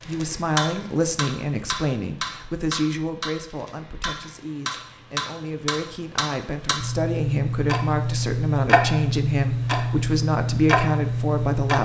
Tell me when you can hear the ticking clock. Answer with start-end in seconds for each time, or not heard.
0.0-11.7.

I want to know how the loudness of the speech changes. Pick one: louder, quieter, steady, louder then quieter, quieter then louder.
quieter then louder.